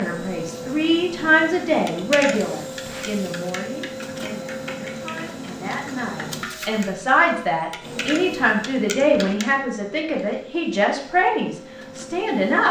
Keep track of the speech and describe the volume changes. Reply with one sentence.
The volume of the speech goes down, then up.